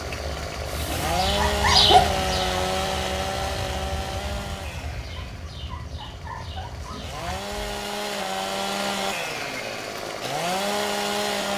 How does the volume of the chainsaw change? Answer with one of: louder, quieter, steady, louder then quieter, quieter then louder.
quieter then louder.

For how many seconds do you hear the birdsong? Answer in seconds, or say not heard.
8 s.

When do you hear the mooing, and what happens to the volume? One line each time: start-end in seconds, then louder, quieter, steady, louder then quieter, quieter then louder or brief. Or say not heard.
not heard.